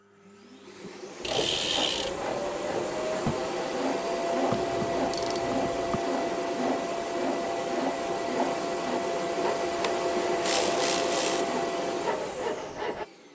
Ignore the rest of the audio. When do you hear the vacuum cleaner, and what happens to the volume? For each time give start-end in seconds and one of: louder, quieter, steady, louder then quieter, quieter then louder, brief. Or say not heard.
0.0-13.2 louder.